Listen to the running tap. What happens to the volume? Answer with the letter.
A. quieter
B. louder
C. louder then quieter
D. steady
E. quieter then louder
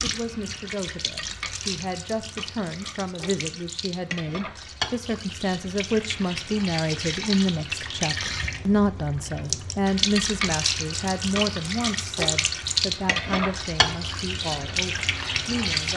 B.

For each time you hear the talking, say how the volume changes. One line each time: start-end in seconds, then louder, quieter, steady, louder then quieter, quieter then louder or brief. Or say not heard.
0.0-15.9 louder then quieter.